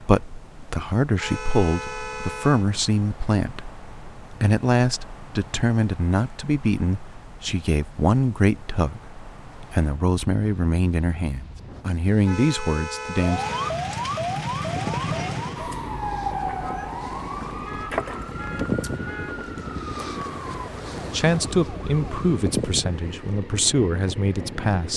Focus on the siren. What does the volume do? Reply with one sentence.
The volume of the siren goes down.